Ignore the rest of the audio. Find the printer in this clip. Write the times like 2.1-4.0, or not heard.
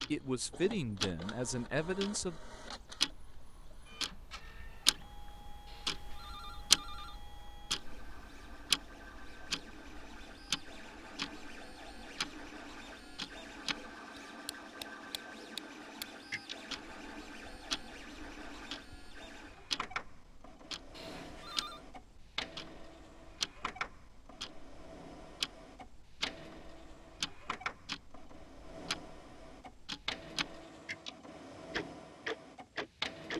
0.0-33.3.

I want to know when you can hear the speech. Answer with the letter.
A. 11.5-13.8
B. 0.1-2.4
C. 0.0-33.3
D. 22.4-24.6
B.